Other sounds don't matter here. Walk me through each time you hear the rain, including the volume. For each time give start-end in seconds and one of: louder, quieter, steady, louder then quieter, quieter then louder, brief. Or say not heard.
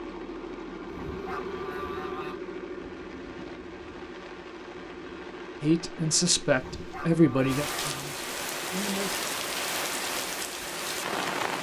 0.0-11.5 louder.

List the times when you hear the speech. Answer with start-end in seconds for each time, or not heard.
5.6-9.2.